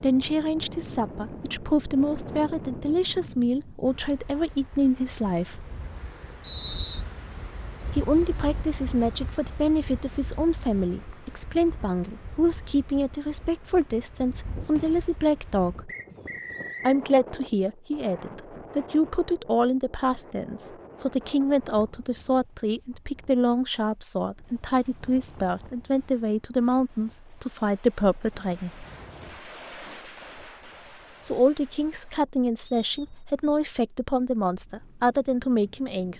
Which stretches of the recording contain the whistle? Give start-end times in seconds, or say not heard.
6.4-7.0, 15.8-17.0, 32.6-33.6.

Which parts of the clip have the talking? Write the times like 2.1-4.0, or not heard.
0.0-5.7, 8.0-15.9, 16.9-28.9, 31.2-36.1.